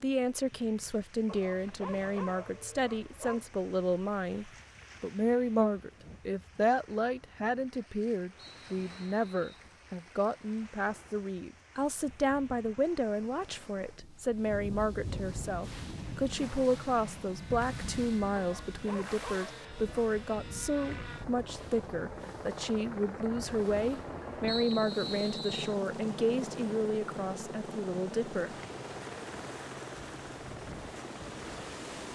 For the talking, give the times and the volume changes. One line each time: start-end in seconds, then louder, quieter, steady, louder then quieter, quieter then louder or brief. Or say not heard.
0.0-28.5 steady.